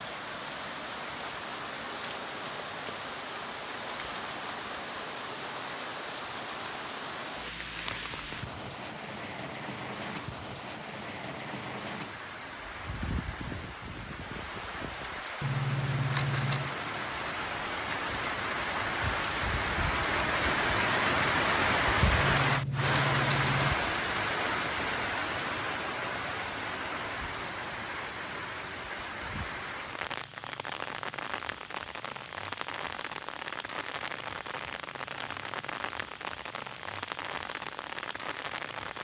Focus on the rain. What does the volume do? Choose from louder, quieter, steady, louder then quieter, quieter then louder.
louder then quieter.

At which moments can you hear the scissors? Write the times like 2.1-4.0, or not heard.
15.4-16.8, 22.2-23.8.